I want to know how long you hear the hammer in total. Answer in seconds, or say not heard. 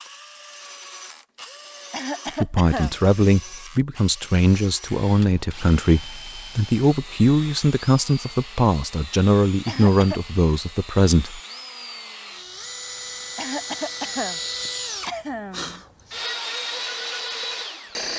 not heard.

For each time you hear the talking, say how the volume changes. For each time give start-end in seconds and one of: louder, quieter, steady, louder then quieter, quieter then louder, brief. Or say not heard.
2.4-11.4 steady.